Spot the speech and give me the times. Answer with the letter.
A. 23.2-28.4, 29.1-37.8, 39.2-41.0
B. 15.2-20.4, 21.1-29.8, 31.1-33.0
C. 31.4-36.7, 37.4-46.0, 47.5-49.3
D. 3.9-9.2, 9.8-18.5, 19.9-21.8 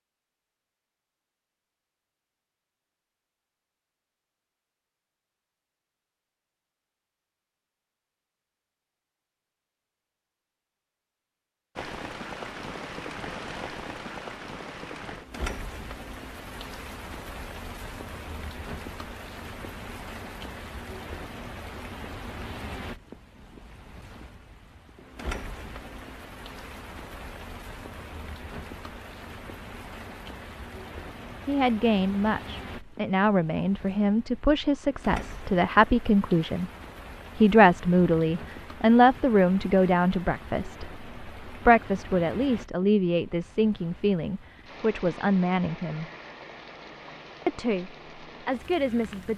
C.